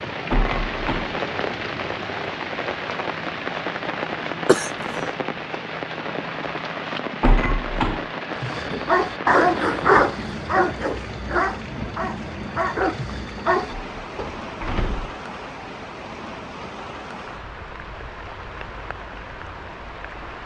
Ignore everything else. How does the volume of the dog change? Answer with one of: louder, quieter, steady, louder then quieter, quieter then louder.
quieter.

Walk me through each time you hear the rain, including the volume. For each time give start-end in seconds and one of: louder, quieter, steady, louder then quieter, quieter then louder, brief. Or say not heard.
0.0-20.4 quieter.